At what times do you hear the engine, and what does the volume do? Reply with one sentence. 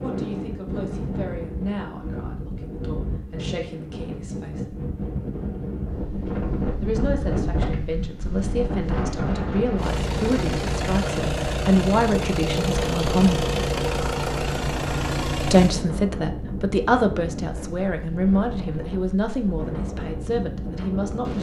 The engine can be heard from 9.8 to 15.8 s, at a steady volume.